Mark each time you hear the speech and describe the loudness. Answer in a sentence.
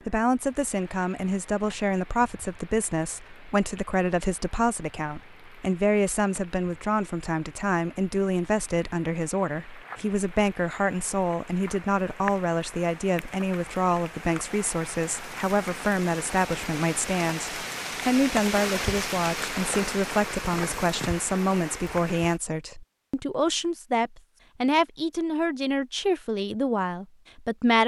You can hear the speech from 0.1 to 27.8 s, at a steady volume.